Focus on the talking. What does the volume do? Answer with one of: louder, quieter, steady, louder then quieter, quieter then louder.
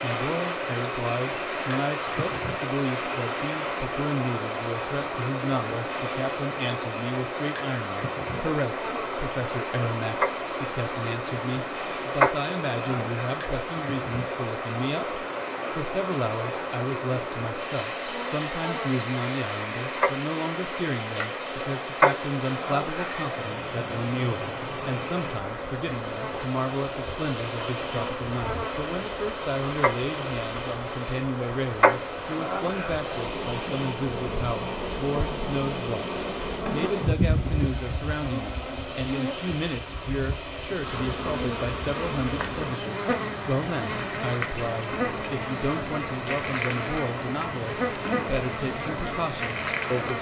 steady.